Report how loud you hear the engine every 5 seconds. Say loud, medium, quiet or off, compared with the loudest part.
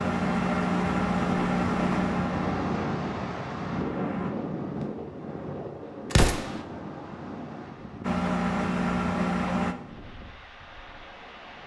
loud, loud, off.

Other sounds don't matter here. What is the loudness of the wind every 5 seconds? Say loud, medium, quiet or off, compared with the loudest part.
loud, medium, quiet.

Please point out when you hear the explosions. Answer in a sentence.
You can hear the explosions from 6.1 to 6.6 s.